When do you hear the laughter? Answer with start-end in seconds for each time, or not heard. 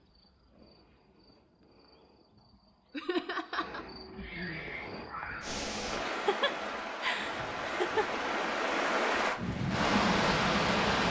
2.9-3.9, 6.0-8.2.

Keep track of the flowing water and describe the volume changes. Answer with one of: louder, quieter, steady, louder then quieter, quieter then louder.
louder.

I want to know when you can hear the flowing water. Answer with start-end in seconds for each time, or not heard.
5.4-11.0.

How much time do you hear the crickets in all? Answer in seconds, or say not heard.
6 s.